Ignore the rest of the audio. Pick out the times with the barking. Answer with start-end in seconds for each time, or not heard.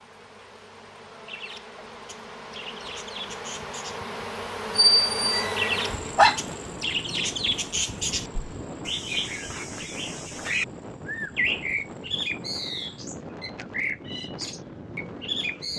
4.8-6.4.